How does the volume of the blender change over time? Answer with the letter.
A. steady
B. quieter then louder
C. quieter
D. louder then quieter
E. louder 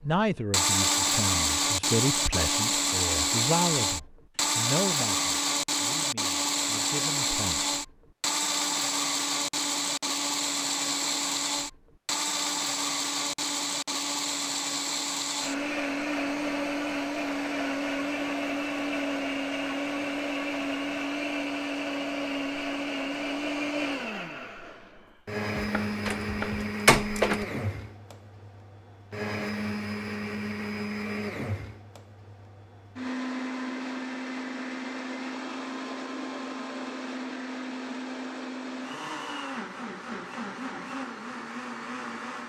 C.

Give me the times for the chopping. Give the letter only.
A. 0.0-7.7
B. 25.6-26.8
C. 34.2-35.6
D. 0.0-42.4
B.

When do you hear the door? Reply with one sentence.
You can hear the door from 26.1 to 27.4 s.